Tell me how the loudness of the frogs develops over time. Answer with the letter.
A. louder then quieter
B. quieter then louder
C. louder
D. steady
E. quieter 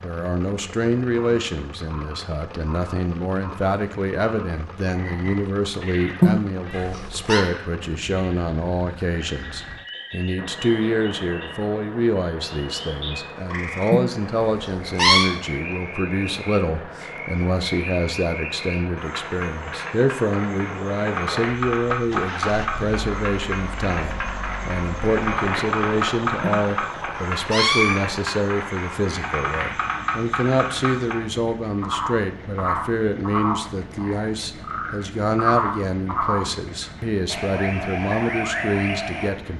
C.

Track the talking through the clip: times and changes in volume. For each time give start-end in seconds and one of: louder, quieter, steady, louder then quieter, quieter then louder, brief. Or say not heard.
0.0-39.5 steady.